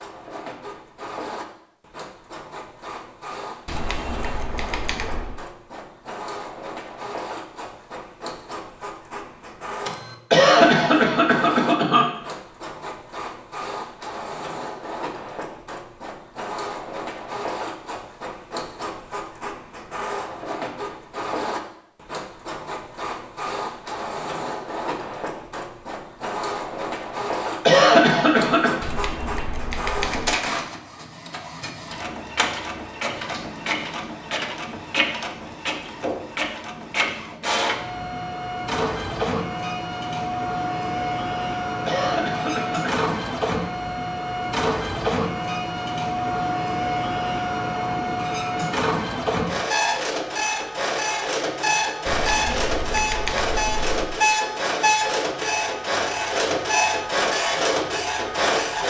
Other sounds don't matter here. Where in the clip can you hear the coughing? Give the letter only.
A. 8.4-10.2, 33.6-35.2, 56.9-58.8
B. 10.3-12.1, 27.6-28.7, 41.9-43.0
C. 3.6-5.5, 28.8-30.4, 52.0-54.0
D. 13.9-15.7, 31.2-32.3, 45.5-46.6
B.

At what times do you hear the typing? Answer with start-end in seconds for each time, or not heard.
3.6-5.5, 28.8-30.4, 52.0-54.0.